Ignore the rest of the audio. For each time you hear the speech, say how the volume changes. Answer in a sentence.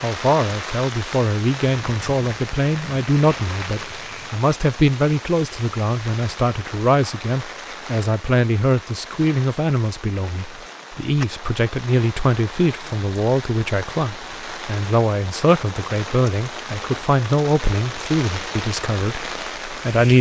The speech can be heard from 0.0 to 20.1 s, at a steady volume.